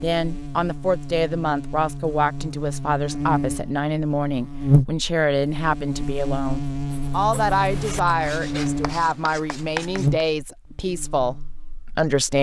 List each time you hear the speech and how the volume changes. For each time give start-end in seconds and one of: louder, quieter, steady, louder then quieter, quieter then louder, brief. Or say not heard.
0.0-12.3 steady.